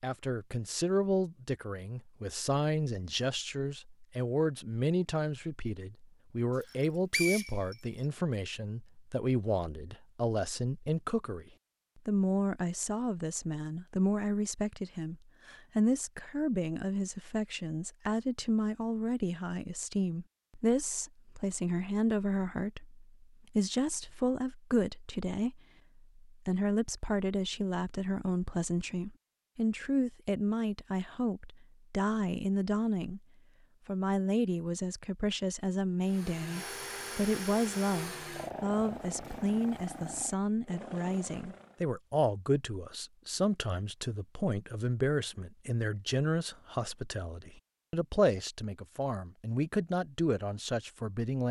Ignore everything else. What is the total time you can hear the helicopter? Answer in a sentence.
The helicopter can be heard for 6 seconds in total.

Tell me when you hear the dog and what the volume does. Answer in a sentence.
You can't hear the dog here.